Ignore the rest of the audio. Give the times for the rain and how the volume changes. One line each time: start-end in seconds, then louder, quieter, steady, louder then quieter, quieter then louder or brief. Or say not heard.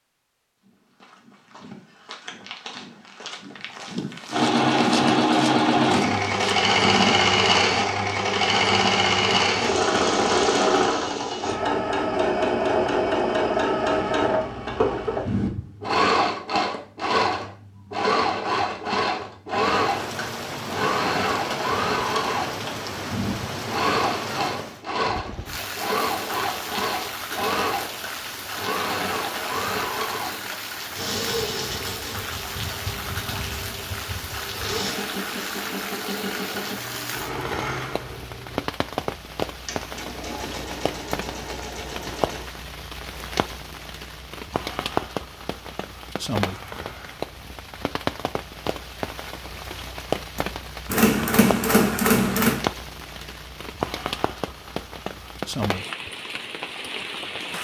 19.8-57.6 steady.